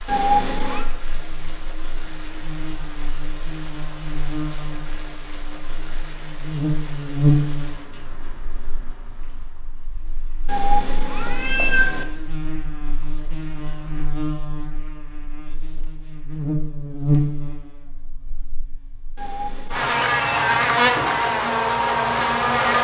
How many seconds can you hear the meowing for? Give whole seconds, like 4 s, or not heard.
4 s.